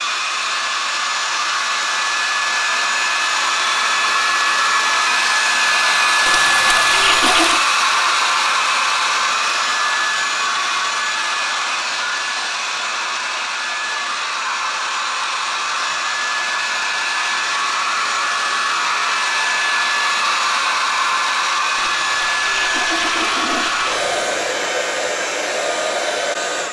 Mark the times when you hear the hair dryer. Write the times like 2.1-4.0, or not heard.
0.0-26.6.